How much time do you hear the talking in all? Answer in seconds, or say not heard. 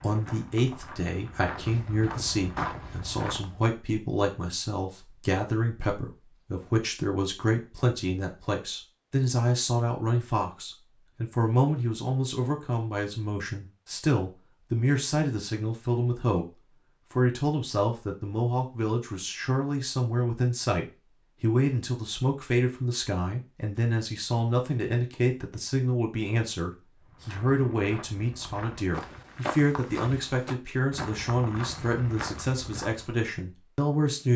34 s.